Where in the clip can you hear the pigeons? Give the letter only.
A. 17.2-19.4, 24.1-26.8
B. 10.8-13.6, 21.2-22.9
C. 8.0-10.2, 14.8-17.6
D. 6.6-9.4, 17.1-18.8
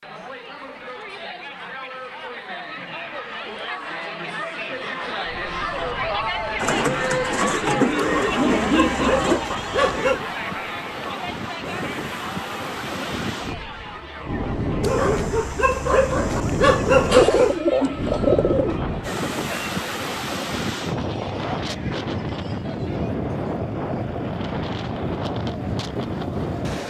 D.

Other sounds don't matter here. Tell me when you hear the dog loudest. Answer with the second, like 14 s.
17 s.